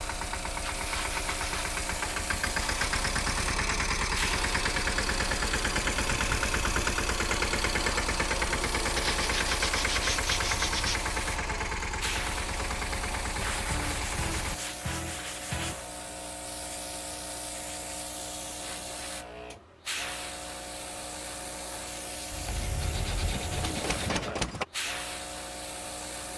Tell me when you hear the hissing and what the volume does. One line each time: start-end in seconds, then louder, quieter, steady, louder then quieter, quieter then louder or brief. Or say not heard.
0.0-26.3 steady.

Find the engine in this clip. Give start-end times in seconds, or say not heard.
0.0-14.6, 22.3-24.6.